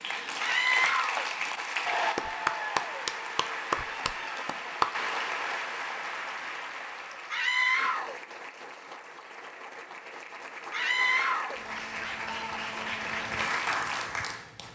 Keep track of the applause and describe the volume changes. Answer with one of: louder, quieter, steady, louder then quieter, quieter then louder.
quieter then louder.